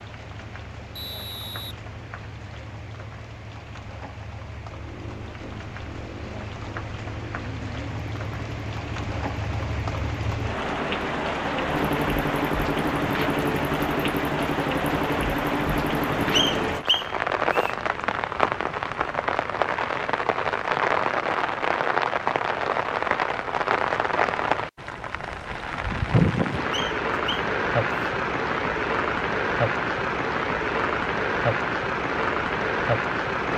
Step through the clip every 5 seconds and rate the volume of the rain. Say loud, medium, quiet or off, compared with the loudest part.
quiet, medium, loud, loud, loud, loud, loud.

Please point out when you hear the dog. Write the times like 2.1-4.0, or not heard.
not heard.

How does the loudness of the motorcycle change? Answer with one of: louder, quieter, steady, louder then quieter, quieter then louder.
louder.